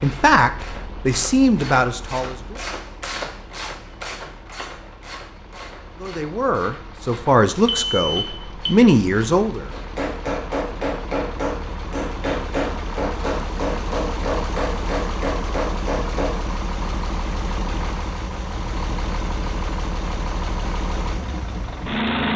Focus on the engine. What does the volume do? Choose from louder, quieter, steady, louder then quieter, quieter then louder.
louder.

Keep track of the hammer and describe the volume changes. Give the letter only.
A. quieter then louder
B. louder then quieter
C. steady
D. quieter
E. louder
C.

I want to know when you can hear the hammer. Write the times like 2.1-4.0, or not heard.
9.7-16.3.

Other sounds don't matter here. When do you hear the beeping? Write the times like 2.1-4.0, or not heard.
7.7-8.8.